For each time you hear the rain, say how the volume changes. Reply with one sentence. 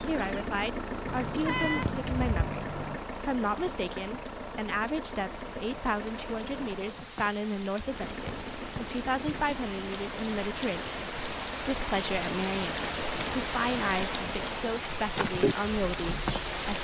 The rain can be heard from 0.0 to 16.8 s, getting louder.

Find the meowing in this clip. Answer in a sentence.
You can hear the meowing from 1.1 to 3.0 s.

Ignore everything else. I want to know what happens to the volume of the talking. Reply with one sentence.
The loudness of the talking stays about the same.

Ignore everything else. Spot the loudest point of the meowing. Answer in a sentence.
The volume of the meowing peaks at 2 seconds.